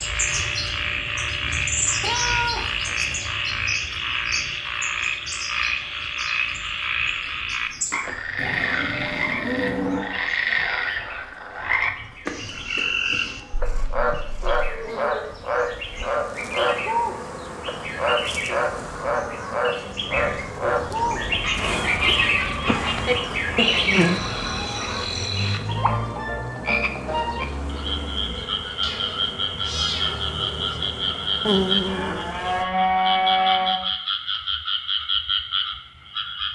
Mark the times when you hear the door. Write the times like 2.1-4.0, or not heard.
not heard.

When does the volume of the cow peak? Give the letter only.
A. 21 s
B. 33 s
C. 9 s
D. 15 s
B.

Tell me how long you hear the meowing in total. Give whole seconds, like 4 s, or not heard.
4 s.